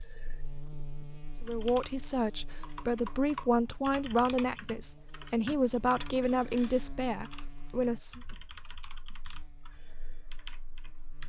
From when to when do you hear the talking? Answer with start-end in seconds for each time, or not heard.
1.4-8.2.